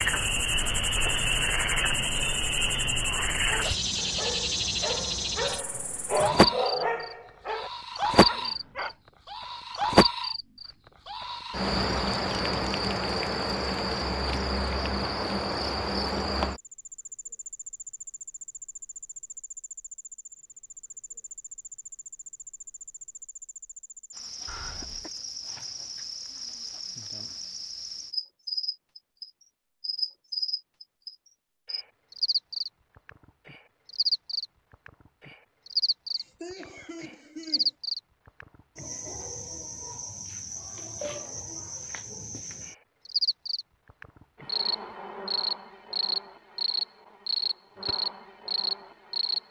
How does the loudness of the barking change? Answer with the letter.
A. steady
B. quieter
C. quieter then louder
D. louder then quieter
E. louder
D.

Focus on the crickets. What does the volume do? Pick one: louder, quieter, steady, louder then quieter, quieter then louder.
quieter then louder.